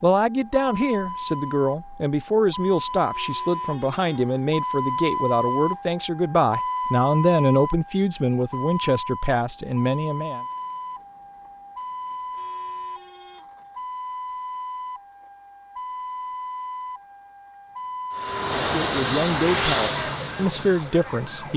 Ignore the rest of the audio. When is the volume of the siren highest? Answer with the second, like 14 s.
5 s.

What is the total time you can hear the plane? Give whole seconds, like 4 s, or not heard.
3 s.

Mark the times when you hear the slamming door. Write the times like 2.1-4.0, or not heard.
not heard.